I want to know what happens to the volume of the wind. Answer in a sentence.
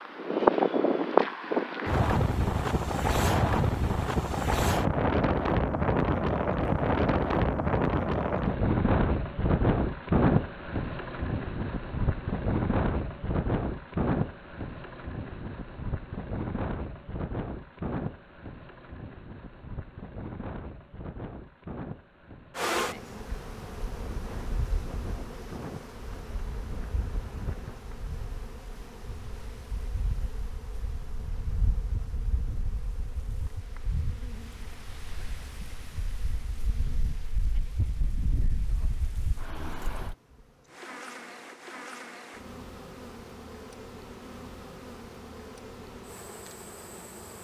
The loudness of the wind goes down.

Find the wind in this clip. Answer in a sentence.
You can hear the wind from 0.0 to 40.1 s.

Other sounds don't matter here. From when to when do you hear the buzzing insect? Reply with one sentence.
The buzzing insect can be heard from 22.6 to 47.3 s.